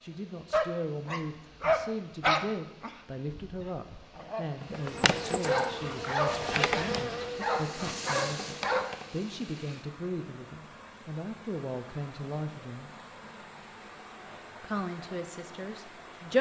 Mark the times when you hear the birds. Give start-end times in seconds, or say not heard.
not heard.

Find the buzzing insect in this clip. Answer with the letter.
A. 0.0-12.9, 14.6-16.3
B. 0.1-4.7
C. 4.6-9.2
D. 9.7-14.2
C.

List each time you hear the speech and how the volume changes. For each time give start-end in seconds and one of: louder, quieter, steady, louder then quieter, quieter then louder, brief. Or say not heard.
0.0-12.9 steady
14.6-16.3 brief.